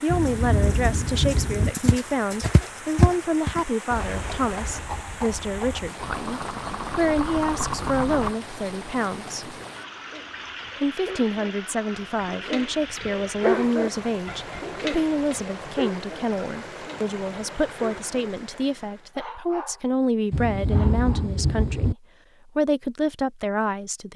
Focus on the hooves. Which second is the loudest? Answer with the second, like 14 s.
3 s.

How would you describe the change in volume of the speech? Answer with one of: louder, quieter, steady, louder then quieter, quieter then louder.
steady.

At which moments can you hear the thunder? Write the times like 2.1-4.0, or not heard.
0.1-1.7, 20.3-21.9.